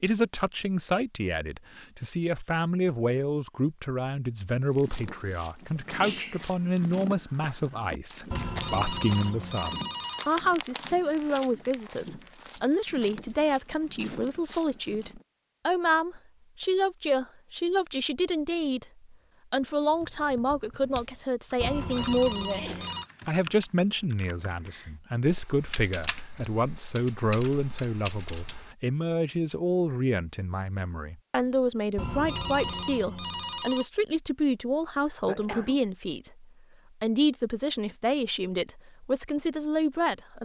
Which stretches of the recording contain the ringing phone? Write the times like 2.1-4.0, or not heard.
8.3-10.5, 21.6-23.1, 31.9-33.9.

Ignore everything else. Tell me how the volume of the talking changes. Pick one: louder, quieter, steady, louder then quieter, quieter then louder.
steady.